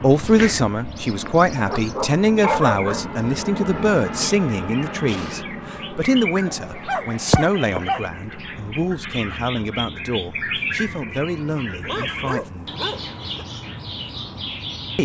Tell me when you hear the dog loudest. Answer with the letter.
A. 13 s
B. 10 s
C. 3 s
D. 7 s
C.